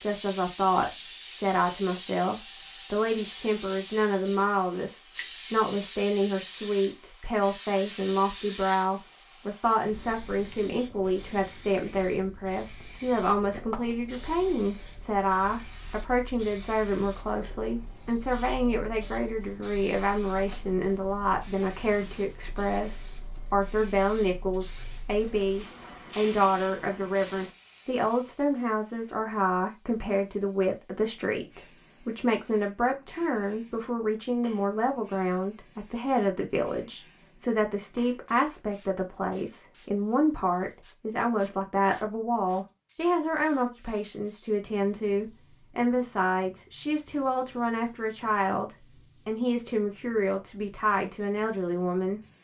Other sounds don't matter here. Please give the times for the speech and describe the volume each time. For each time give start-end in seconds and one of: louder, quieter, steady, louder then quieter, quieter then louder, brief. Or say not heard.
0.0-52.2 steady.